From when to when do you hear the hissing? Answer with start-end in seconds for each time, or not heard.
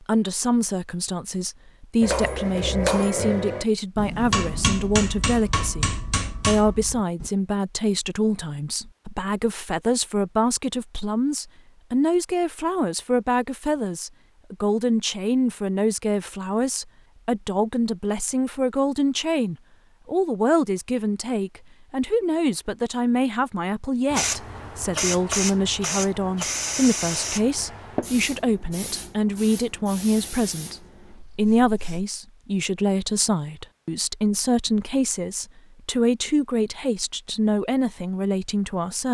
24.1-32.0.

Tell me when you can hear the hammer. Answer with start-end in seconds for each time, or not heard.
2.0-7.3.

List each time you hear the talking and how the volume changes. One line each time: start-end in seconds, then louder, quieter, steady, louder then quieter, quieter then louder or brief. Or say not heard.
0.0-39.0 steady.